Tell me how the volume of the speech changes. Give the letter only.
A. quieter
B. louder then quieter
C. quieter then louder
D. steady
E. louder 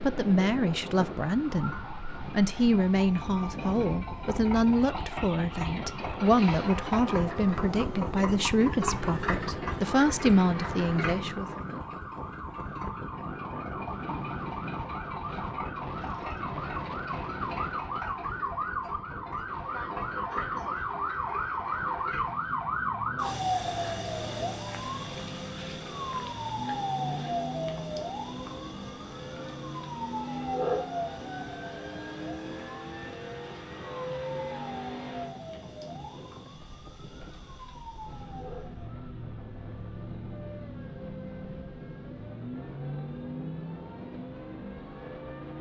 D.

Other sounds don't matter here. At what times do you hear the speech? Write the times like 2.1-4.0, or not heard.
0.0-11.5.